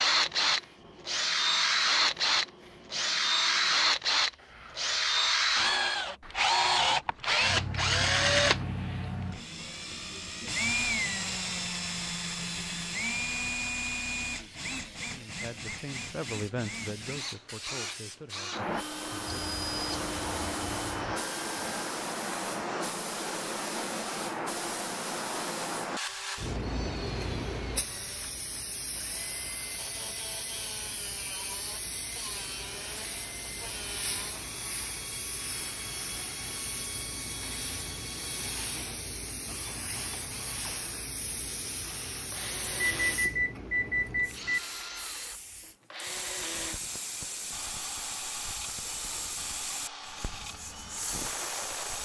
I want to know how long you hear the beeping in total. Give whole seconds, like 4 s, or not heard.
4 s.